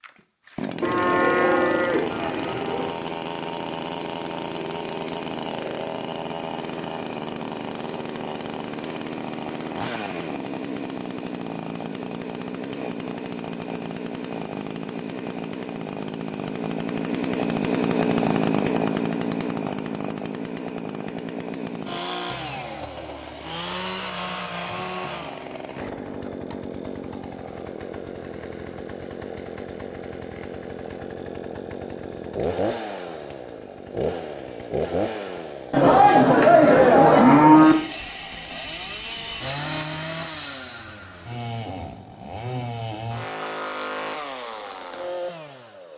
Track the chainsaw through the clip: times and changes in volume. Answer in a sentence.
You can hear the chainsaw from 0.0 to 45.9 s, at a steady volume.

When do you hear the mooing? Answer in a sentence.
You can hear the mooing from 0.8 to 2.9 s and from 35.7 to 37.8 s.